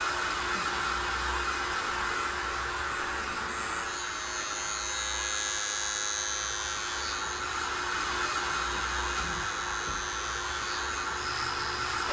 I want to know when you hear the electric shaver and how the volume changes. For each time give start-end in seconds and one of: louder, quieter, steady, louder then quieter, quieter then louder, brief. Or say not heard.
0.0-12.0 louder then quieter.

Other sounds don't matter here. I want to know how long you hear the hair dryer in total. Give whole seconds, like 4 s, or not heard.
12 s.